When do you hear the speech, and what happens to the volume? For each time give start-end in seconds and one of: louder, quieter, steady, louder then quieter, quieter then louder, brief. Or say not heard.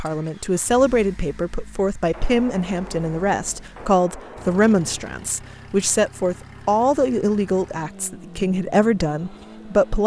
0.0-10.0 steady.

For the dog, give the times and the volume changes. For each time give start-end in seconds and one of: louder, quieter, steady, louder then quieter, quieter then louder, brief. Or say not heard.
not heard.